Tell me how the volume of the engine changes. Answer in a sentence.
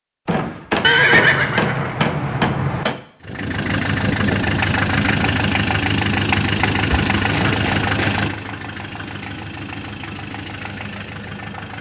The loudness of the engine goes down.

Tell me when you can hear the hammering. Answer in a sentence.
You can hear the hammering from 0.2 to 3.0 s and from 7.3 to 8.2 s.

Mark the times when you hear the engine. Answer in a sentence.
You can hear the engine from 3.2 to 11.7 s.